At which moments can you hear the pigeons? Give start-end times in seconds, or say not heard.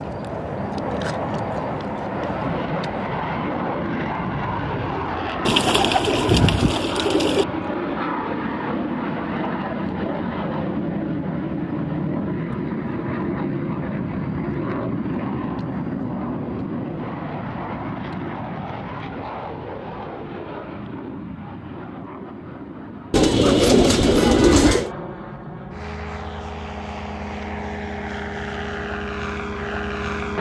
5.5-7.5, 23.1-24.9.